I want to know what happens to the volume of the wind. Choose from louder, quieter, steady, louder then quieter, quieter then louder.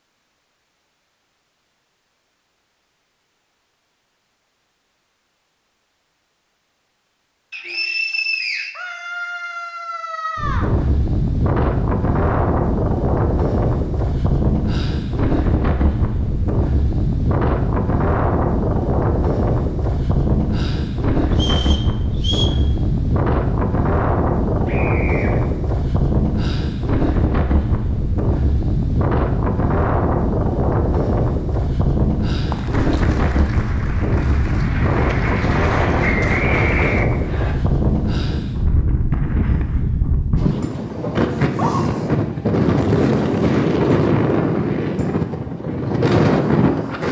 steady.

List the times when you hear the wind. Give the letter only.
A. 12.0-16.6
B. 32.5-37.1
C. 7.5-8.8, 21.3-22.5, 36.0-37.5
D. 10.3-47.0
D.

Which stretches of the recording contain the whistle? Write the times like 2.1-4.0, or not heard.
7.5-8.8, 21.3-22.5, 36.0-37.5.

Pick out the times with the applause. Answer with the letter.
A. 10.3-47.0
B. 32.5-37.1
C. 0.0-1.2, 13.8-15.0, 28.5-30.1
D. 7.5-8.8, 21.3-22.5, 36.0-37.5
B.